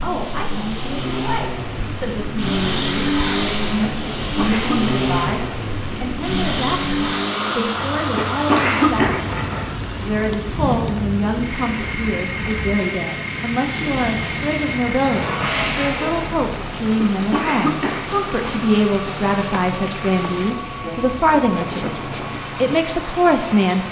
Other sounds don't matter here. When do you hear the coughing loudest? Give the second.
9 s.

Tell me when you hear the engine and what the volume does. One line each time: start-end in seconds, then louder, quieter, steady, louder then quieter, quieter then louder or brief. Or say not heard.
0.0-23.8 quieter.